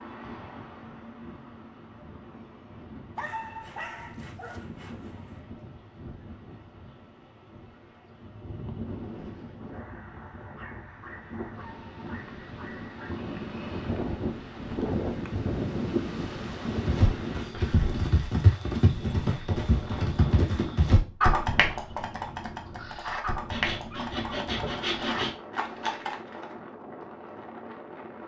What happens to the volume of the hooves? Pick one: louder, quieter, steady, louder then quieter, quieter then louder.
quieter.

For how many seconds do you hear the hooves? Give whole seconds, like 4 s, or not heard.
10 s.